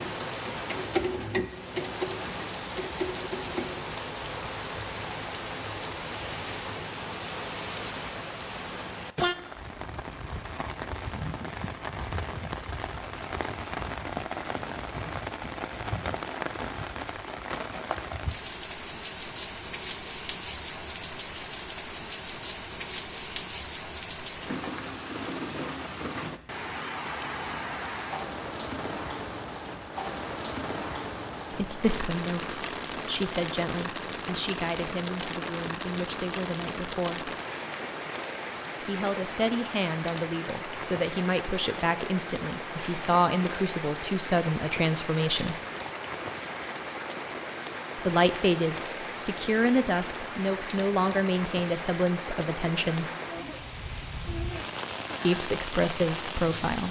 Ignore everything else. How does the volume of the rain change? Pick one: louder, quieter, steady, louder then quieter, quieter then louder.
steady.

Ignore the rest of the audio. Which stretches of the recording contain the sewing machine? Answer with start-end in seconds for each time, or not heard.
0.0-3.9.